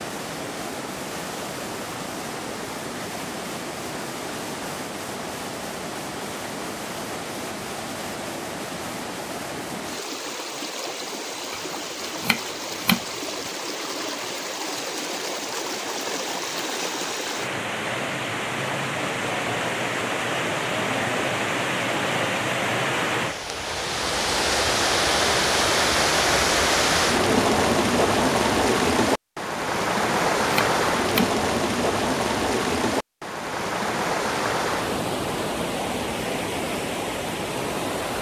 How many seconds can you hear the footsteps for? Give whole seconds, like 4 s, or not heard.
not heard.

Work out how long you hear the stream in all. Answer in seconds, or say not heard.
38 s.